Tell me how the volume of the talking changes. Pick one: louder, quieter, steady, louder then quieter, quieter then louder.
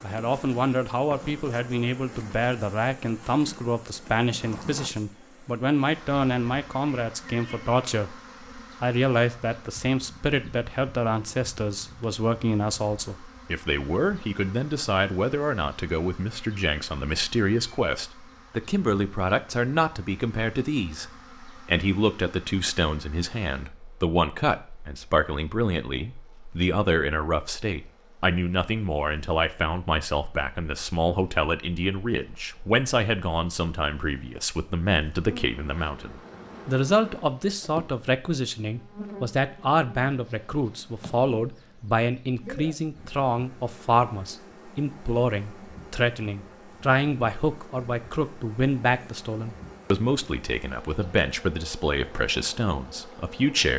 steady.